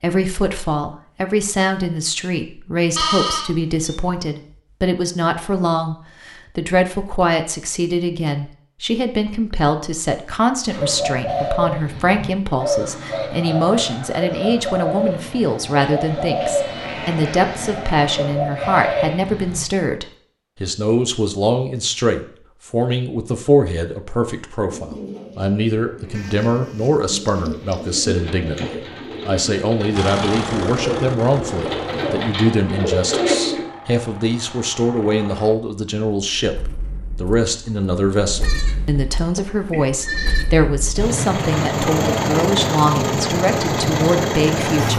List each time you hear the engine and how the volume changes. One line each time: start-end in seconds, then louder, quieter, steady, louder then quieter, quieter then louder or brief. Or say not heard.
29.9-44.9 quieter then louder.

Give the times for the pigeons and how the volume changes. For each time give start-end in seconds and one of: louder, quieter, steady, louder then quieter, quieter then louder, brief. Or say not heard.
10.7-19.6 steady
24.6-33.6 louder.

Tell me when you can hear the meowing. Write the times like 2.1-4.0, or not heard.
not heard.